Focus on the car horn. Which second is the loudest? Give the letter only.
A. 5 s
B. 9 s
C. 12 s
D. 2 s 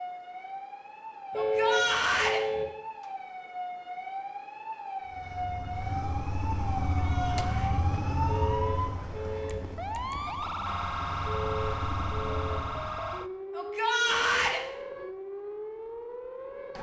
D.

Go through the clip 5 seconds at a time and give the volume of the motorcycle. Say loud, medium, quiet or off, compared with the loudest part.
off, loud, medium, off.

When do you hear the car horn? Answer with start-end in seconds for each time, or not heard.
1.3-2.6, 8.2-9.6, 11.2-12.6.